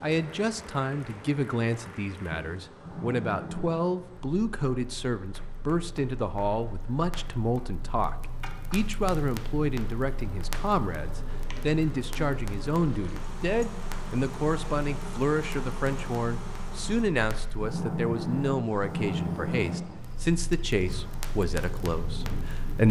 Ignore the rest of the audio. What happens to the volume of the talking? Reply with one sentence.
The volume of the talking stays about the same.